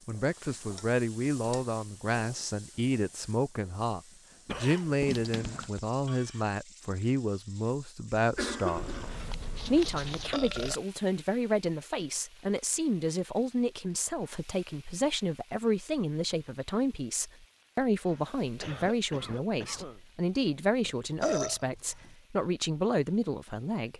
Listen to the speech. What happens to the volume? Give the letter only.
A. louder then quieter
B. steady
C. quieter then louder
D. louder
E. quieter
B.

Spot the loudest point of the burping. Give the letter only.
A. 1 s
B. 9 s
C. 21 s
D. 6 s
C.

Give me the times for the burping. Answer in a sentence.
You can hear the burping from 5.0 to 5.7 s, from 8.8 to 10.8 s and from 20.9 to 22.1 s.